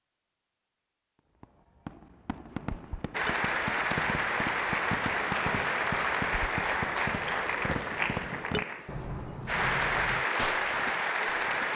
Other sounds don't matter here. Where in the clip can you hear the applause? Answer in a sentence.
You can hear the applause from 3.1 to 11.7 s.